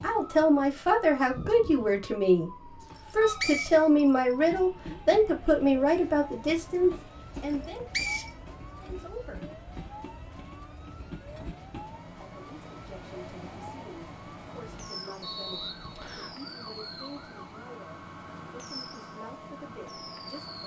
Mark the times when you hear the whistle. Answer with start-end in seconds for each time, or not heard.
3.0-4.5, 7.4-8.3, 15.2-16.4.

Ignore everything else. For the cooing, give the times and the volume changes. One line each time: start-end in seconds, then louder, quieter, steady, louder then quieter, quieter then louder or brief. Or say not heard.
not heard.